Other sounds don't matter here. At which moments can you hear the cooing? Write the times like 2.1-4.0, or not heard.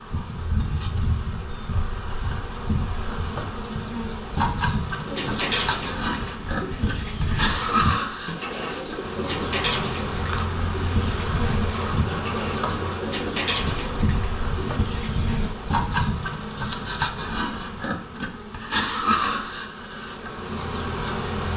5.0-15.6.